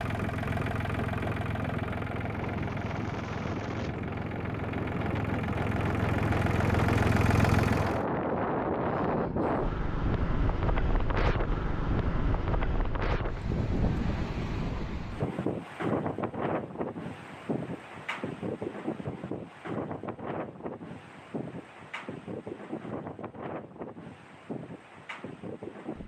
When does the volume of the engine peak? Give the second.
7 s.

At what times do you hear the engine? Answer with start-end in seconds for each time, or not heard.
0.0-8.1.